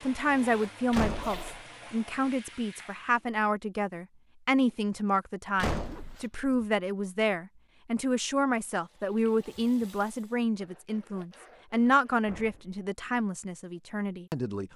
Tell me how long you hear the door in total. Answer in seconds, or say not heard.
2 s.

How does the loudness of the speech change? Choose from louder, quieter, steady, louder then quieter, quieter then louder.
steady.